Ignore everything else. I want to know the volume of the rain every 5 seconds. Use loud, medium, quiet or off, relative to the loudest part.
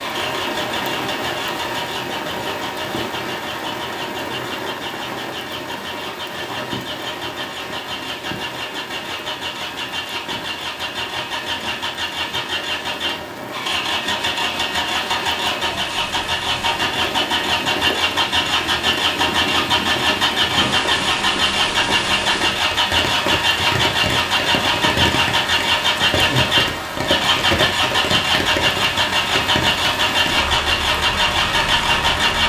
loud, medium, medium, medium, loud, loud, loud.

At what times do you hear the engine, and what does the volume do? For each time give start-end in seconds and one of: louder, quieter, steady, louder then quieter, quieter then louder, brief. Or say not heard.
0.0-32.4 louder.